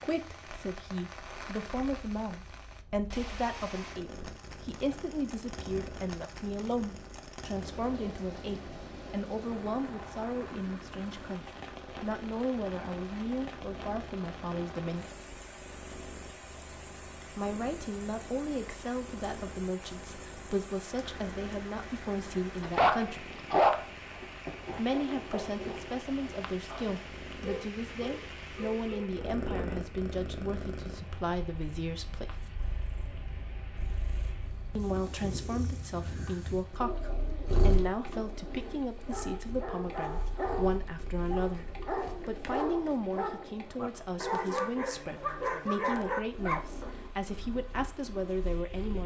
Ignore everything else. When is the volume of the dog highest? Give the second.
24 s.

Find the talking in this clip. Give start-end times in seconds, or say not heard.
0.0-15.1, 17.4-23.3, 24.8-32.5, 34.8-49.0.